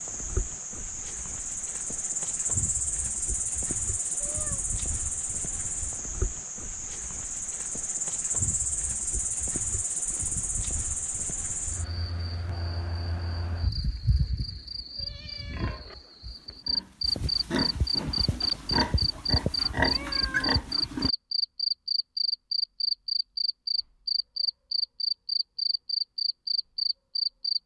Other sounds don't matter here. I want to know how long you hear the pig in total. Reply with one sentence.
You can hear the pig for 6 seconds altogether.